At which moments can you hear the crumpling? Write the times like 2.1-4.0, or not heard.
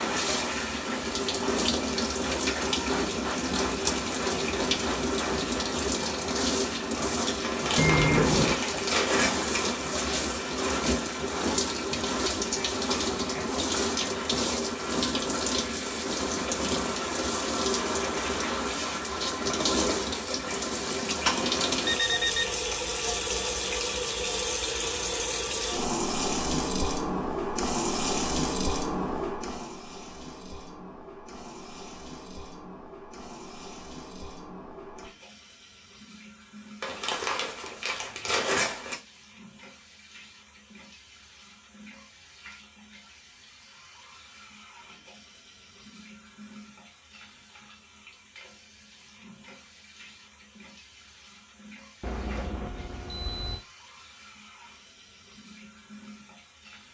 7.4-9.8, 36.8-39.0.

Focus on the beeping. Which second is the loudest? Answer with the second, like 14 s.
8 s.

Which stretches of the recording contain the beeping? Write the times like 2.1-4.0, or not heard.
7.8-8.6, 21.9-22.4, 52.0-53.6.